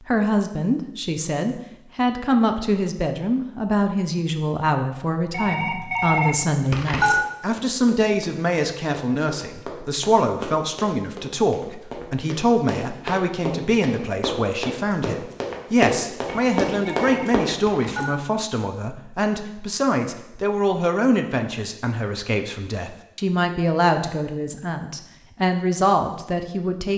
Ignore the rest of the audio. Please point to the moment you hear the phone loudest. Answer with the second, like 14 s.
7 s.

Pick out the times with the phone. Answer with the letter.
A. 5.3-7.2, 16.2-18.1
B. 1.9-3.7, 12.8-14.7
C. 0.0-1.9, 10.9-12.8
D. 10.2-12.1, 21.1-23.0
A.